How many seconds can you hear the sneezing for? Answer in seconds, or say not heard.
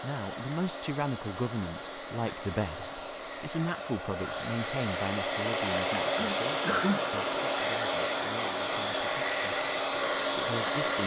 2 s.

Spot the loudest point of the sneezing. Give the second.
7 s.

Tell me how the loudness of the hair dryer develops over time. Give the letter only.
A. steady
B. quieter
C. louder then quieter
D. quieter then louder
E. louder
E.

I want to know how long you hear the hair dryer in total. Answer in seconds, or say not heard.
11 s.